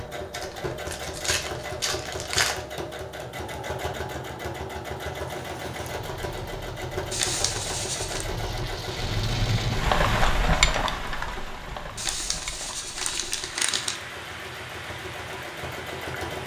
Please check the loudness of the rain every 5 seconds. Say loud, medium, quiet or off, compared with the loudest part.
off, loud, loud, medium.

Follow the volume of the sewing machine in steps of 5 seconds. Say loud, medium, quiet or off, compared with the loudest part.
loud, loud, medium, loud.